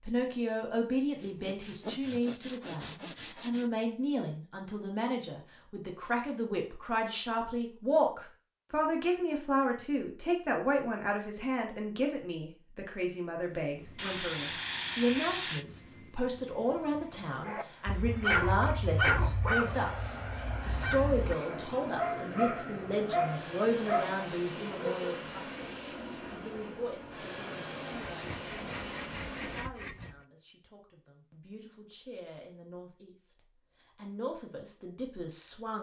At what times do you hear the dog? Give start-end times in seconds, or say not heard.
17.4-25.1.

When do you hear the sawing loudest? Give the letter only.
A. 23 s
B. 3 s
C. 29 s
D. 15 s
D.